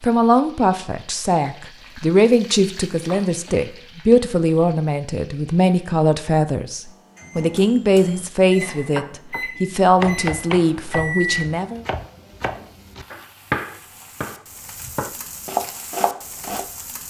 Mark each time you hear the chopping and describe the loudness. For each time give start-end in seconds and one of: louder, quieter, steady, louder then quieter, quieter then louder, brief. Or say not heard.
8.9-16.6 quieter then louder.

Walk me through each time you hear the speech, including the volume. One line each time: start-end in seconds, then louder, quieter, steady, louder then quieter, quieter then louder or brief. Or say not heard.
0.0-11.8 steady.